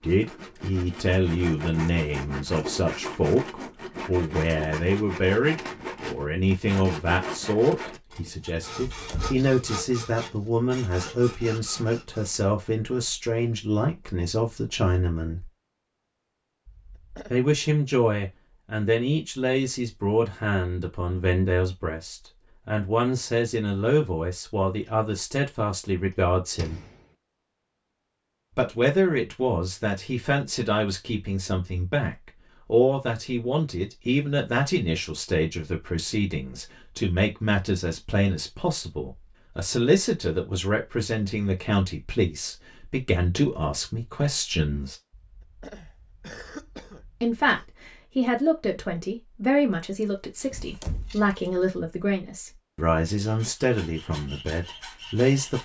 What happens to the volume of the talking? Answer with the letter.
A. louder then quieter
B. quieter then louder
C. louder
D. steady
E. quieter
D.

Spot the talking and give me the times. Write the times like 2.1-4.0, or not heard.
0.0-15.5, 17.3-26.8, 28.6-45.0, 47.2-55.5.